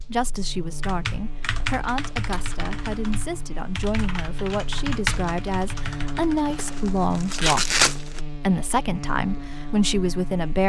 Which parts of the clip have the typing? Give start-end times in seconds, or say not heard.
0.6-6.6.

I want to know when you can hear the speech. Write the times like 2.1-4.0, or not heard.
0.0-10.6.